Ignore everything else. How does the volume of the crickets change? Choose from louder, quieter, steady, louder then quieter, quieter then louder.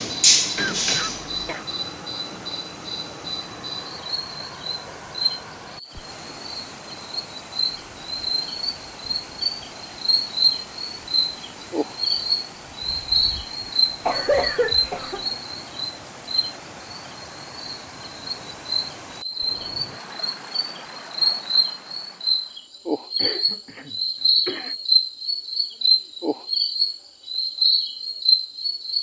louder.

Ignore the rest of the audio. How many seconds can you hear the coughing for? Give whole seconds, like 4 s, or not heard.
4 s.